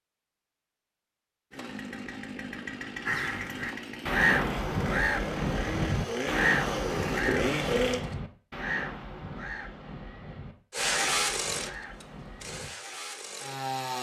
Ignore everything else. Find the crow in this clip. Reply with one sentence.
You can hear the crow from 3.0 to 12.7 s.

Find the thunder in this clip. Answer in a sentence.
The thunder can't be heard in this clip.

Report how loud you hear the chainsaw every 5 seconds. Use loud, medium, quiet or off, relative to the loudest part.
medium, loud, loud.